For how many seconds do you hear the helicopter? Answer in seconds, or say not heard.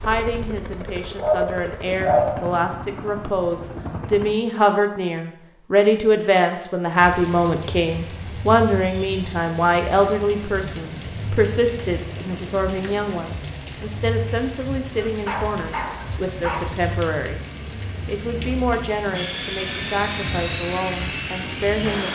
7 s.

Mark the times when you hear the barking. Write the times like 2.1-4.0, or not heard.
1.1-2.5, 14.9-16.8.